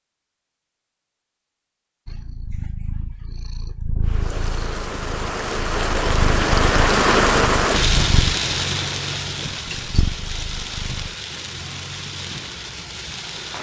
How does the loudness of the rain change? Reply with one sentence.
The volume of the rain goes up, then down.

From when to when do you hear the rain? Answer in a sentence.
You can hear the rain from 4.0 to 13.5 s.